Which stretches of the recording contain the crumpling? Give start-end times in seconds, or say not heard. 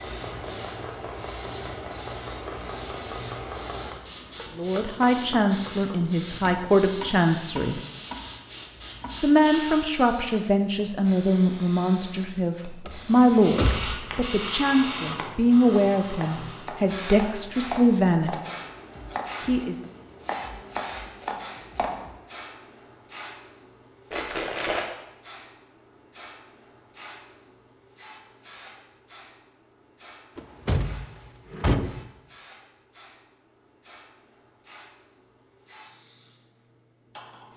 24.1-24.9.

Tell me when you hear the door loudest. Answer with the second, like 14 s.
32 s.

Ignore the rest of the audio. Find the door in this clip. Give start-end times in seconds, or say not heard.
12.8-14.2, 30.4-32.0.